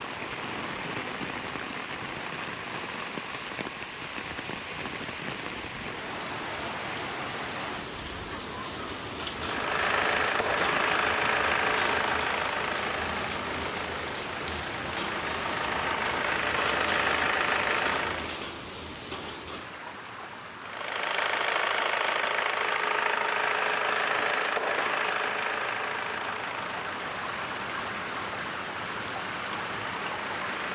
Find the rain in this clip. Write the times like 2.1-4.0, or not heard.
0.0-30.7.